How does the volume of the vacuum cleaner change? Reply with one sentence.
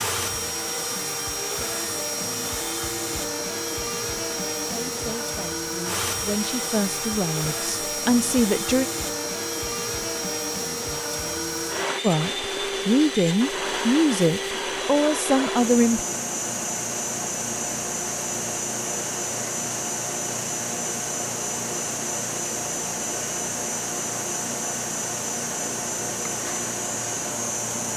The volume of the vacuum cleaner stays about the same.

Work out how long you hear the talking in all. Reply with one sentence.
You can hear the talking for 8 seconds altogether.